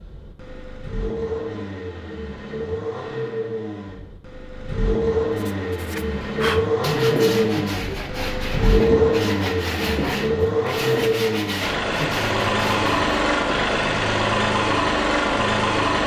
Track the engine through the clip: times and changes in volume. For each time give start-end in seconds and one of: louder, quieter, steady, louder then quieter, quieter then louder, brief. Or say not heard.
0.0-16.0 louder.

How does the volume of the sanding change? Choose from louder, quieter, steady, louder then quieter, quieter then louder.
steady.